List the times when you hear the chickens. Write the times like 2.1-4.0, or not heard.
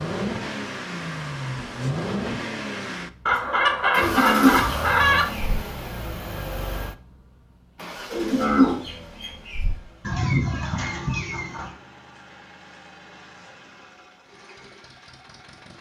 3.2-5.2, 10.0-11.7.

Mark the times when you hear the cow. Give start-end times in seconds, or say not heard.
4.0-5.5, 8.1-9.8.